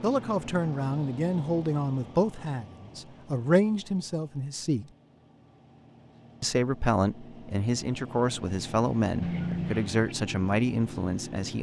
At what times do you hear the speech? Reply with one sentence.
You can hear the speech from 0.0 to 4.9 s and from 6.4 to 11.5 s.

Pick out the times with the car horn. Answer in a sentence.
The car horn can be heard from 9.2 to 10.1 s.